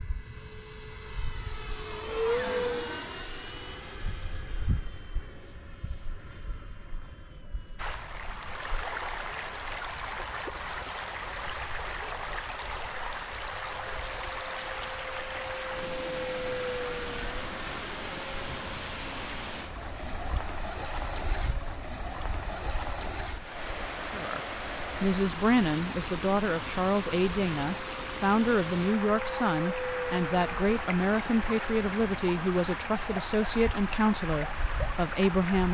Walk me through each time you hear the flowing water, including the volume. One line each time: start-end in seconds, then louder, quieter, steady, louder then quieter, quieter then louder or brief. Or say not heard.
7.8-35.6 steady.